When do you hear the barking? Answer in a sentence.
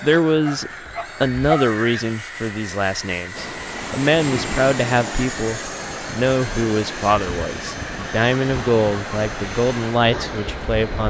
The barking can be heard from 0.3 to 2.1 s.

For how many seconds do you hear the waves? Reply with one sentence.
You can hear the waves for 8 seconds altogether.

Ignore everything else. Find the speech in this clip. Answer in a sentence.
The speech can be heard from 0.0 to 11.0 s.